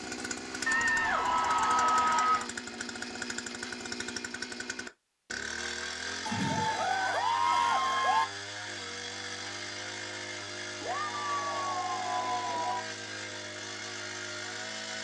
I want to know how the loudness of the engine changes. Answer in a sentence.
The loudness of the engine stays about the same.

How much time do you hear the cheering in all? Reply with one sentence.
The cheering can be heard for 6 seconds in total.